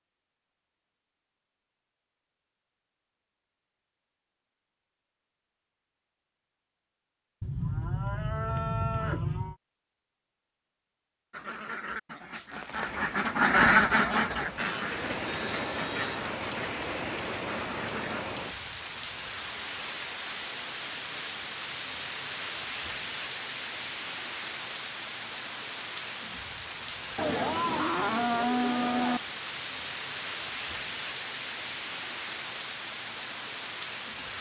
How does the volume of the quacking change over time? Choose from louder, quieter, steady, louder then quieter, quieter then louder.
louder then quieter.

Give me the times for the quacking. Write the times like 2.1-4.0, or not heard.
11.3-18.2.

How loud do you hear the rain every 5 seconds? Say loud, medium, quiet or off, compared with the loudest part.
off, off, medium, loud, loud, loud, loud.